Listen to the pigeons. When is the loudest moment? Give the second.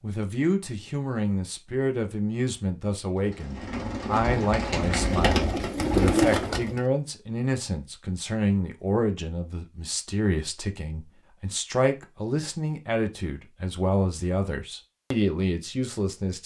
6 s.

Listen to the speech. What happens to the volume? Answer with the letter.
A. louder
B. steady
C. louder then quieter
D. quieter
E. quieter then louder
B.